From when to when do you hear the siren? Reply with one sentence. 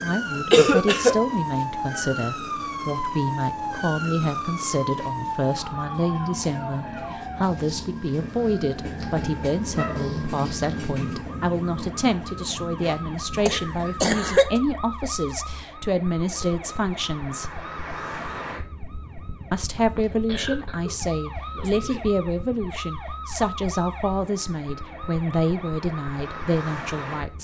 The siren can be heard from 0.0 to 27.3 s.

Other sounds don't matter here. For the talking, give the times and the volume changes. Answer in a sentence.
The talking can be heard from 0.0 to 17.6 s, at a steady volume; and from 19.5 to 27.3 s, at a steady volume.